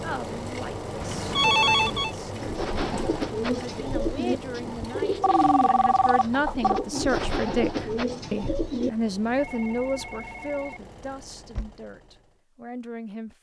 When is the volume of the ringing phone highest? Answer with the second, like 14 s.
2 s.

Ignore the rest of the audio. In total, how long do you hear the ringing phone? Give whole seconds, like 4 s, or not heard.
5 s.